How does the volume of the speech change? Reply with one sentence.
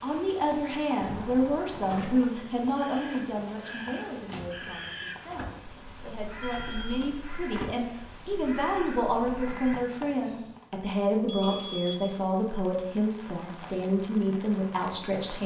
The volume of the speech goes down, then up.